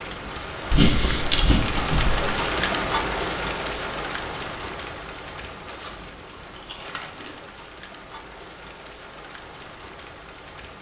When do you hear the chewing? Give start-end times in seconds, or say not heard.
0.7-2.4, 5.7-7.4.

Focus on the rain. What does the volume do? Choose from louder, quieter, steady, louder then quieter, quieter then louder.
quieter.